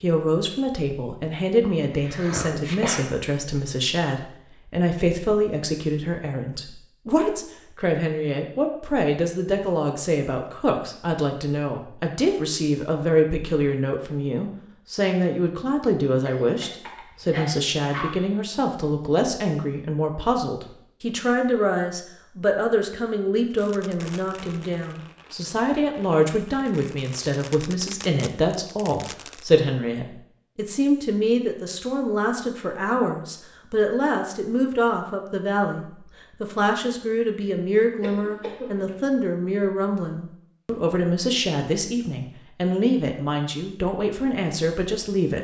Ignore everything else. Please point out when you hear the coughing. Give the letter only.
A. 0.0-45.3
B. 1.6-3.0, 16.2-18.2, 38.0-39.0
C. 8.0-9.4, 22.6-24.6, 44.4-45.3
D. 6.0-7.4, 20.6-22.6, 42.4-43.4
B.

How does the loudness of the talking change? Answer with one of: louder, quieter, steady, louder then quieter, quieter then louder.
steady.